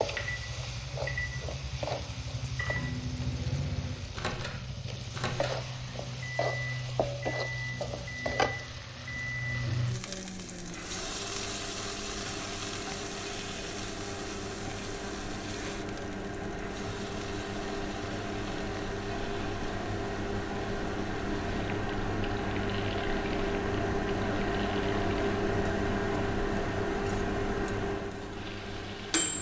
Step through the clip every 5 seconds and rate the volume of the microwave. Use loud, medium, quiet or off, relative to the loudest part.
medium, medium, medium, medium, loud, loud.